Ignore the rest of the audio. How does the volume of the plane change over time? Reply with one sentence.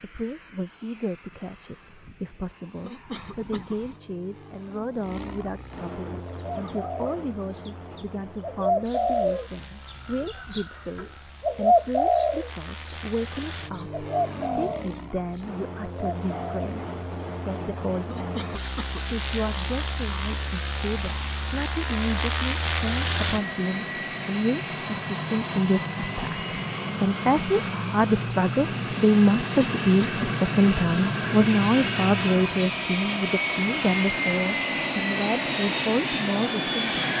The volume of the plane goes up.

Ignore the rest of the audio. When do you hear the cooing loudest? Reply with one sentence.
The volume of the cooing peaks at 12 seconds.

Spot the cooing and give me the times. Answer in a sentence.
The cooing can be heard from 6.0 to 12.9 s, from 13.8 to 14.9 s and from 15.8 to 16.6 s.